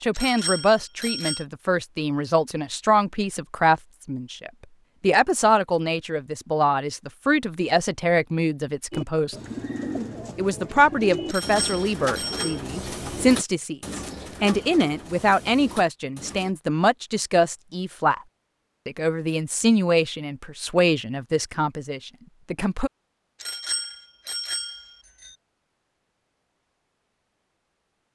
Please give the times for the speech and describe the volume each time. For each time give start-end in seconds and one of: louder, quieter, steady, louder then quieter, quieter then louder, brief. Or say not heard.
0.0-9.3 steady
10.3-18.2 steady
18.9-22.9 quieter.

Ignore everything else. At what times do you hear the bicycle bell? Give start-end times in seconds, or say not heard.
0.1-1.4, 11.2-12.6, 23.4-25.3.